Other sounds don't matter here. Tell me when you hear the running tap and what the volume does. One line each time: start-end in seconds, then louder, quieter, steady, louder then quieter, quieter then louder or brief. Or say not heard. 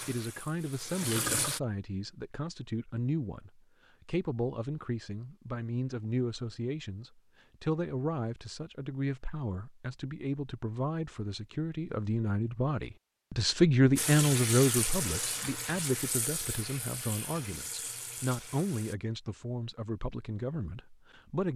0.0-1.6 brief
13.9-18.9 quieter.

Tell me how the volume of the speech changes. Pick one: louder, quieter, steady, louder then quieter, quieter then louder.
louder then quieter.